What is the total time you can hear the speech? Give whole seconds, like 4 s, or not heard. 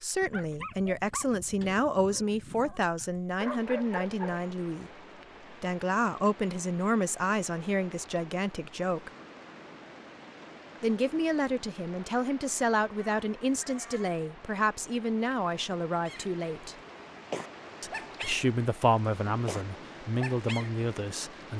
18 s.